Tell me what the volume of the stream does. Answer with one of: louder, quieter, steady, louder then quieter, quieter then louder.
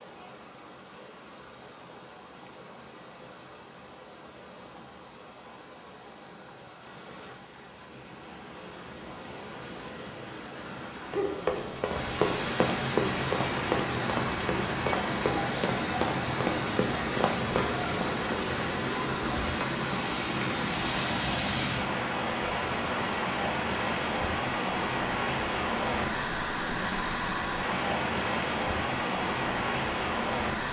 louder.